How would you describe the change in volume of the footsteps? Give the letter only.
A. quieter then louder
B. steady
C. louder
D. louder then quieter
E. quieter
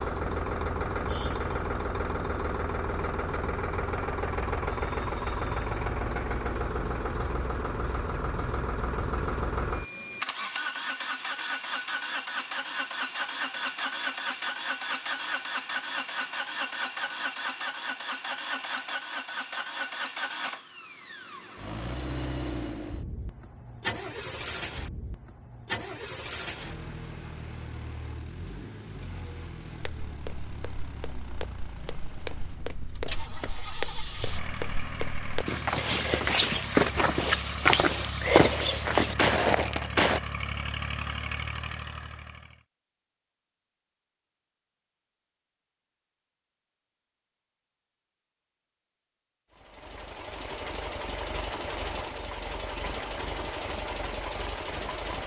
C.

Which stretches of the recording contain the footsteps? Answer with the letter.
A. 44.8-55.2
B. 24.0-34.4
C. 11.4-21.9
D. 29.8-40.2
D.